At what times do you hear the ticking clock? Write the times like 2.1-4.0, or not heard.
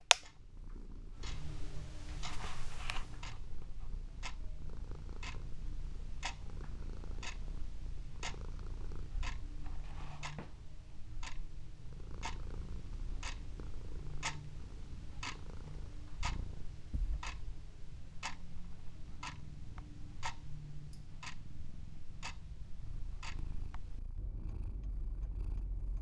0.0-25.9.